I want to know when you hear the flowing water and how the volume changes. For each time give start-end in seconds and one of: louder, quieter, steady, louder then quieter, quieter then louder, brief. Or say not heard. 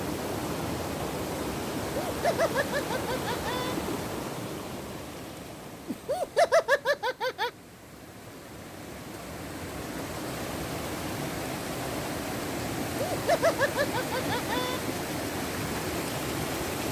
0.0-16.8 quieter then louder.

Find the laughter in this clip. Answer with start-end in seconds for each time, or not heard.
1.8-3.8, 5.8-7.5, 12.8-14.8.